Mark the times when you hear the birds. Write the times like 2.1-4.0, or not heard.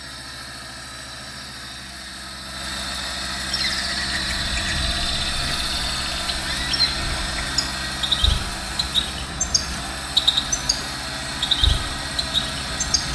3.5-13.1.